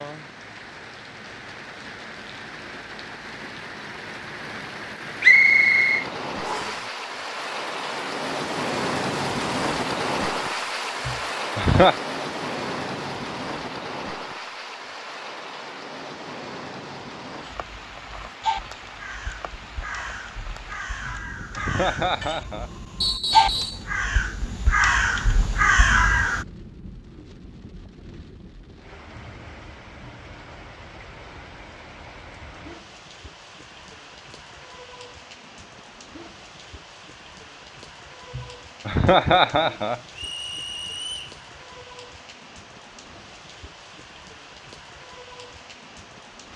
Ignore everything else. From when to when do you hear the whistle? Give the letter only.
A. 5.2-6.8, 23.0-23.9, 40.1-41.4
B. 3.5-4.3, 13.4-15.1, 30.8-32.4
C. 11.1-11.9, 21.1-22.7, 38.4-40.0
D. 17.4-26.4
A.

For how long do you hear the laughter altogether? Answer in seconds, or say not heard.
4 s.